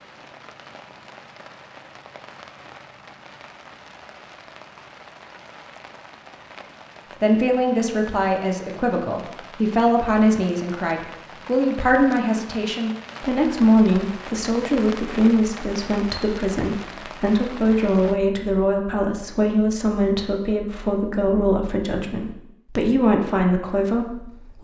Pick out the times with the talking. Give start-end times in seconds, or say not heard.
7.2-24.5.